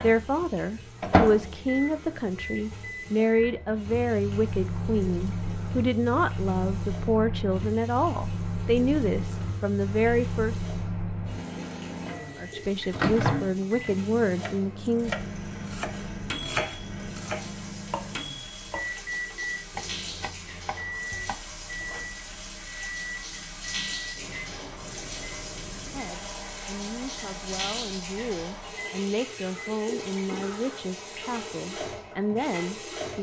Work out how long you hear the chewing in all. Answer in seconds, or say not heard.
not heard.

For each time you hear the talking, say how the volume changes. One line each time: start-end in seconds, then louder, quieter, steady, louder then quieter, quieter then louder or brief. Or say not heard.
0.0-10.6 steady
12.3-15.2 brief
25.8-33.1 louder.